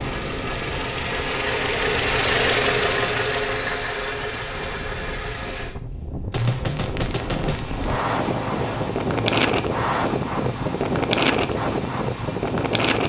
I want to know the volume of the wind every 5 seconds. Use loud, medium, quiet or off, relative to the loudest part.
quiet, loud, loud.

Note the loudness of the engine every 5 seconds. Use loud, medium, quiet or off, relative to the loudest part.
loud, medium, medium.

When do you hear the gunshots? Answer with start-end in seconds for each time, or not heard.
6.3-8.9.